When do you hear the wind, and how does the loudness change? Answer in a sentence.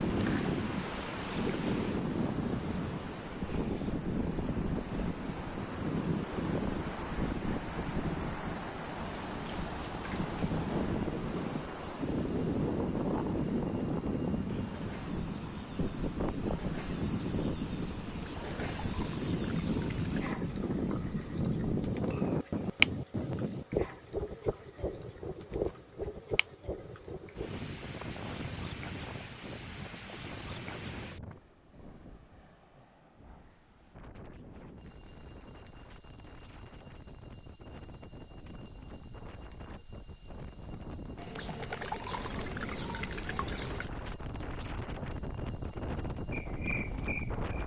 You can hear the wind from 0.0 to 47.6 s, getting quieter then louder.